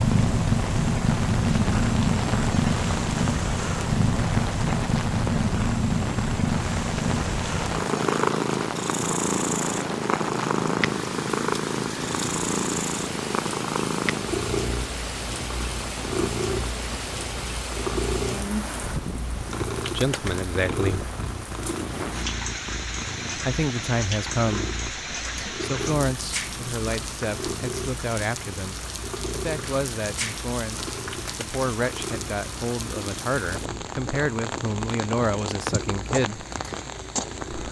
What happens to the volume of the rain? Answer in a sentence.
The loudness of the rain stays about the same.